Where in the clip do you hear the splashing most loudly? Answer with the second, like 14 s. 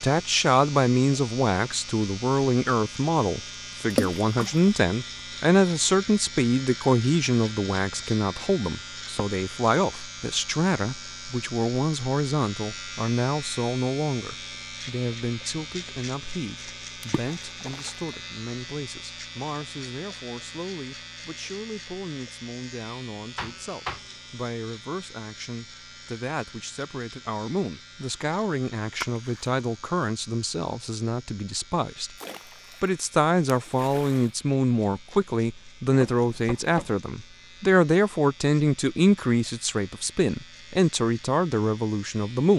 4 s.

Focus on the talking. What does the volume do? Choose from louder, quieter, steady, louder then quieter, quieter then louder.
quieter then louder.